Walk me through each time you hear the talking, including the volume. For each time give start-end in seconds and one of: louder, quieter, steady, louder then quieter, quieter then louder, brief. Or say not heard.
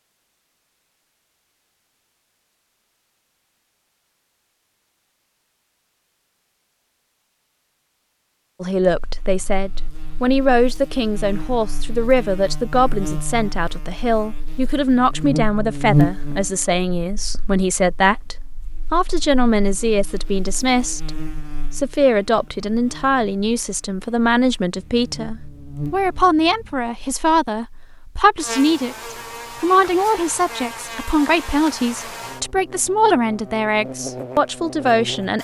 8.6-21.1 steady
21.7-35.3 steady.